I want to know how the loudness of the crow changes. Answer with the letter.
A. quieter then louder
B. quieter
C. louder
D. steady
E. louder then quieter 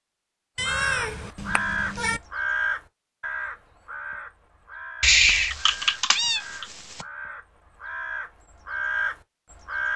A.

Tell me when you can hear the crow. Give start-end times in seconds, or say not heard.
0.6-9.9.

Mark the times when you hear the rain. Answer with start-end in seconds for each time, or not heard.
not heard.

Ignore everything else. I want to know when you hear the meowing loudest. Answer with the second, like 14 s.
5 s.